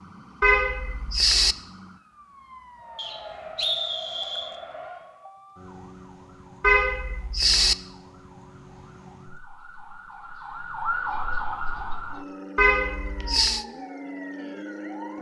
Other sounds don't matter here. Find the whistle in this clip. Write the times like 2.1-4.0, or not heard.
3.0-4.5.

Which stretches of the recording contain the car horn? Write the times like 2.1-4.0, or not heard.
0.4-1.6, 6.6-7.8, 12.6-13.7.